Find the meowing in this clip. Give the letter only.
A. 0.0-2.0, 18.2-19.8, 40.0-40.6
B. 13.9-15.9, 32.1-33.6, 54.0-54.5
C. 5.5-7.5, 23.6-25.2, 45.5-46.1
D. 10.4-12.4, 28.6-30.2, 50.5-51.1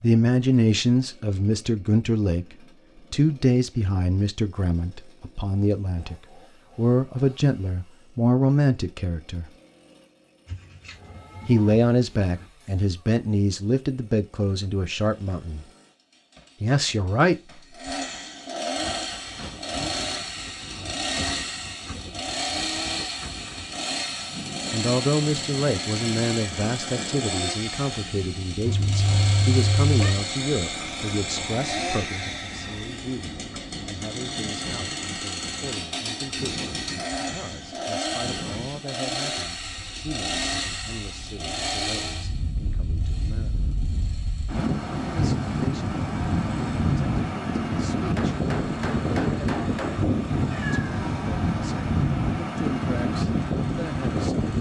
D.